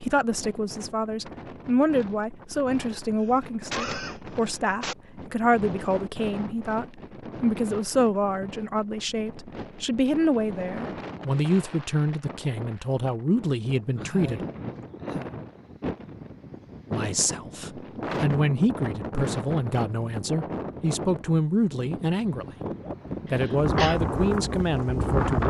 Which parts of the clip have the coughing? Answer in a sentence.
You can hear the coughing from 3.2 to 5.0 s, from 13.9 to 15.3 s and from 23.3 to 24.0 s.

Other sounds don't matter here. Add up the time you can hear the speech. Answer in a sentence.
The speech can be heard for 22 seconds in total.